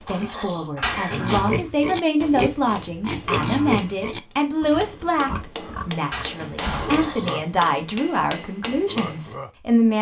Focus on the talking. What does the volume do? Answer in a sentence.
The volume of the talking stays about the same.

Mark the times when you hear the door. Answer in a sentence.
The door can be heard from 0.8 to 1.4 s and from 6.1 to 7.2 s.